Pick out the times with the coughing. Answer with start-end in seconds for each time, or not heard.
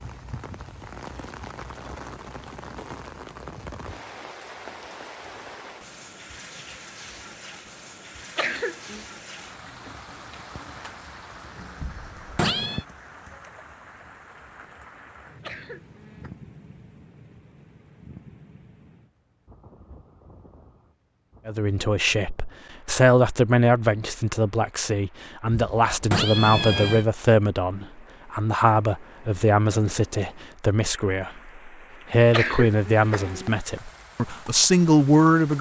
8.3-9.1, 15.4-16.3, 32.3-33.6.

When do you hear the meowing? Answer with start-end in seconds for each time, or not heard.
11.8-12.8, 25.5-27.1.